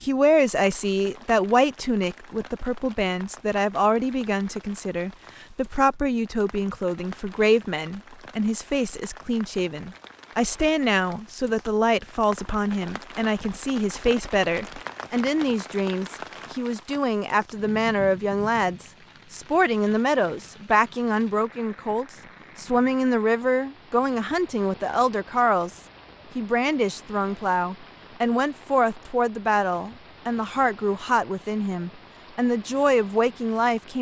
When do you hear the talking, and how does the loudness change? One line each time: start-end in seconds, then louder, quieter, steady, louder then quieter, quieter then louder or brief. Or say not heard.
0.0-33.9 steady.